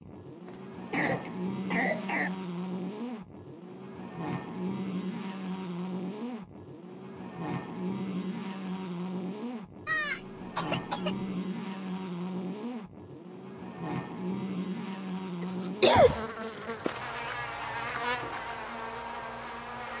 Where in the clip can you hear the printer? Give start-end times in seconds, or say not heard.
not heard.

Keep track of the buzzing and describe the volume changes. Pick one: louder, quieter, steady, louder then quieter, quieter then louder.
steady.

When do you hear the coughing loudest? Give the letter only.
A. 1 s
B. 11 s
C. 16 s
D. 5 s
C.